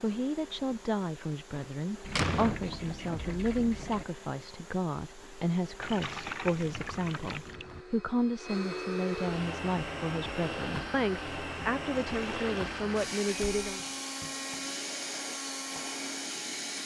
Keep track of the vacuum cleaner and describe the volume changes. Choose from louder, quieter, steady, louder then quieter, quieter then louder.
louder.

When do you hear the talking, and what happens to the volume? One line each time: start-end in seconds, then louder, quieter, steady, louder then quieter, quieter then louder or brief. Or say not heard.
0.0-13.8 steady.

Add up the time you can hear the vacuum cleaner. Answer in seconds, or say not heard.
17 s.